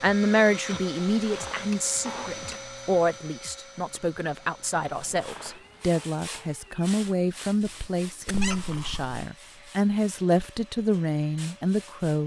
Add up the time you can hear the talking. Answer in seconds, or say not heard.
12 s.